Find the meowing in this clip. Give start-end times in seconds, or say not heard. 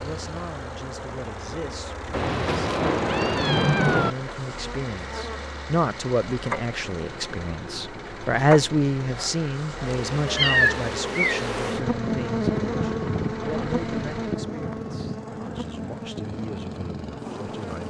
2.1-4.2, 10.2-11.5.